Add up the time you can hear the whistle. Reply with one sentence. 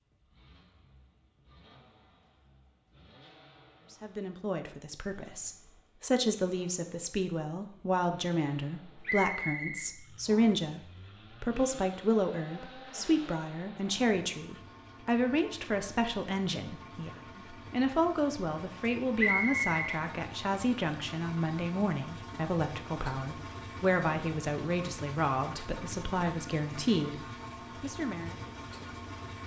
The whistle can be heard for 2 seconds in total.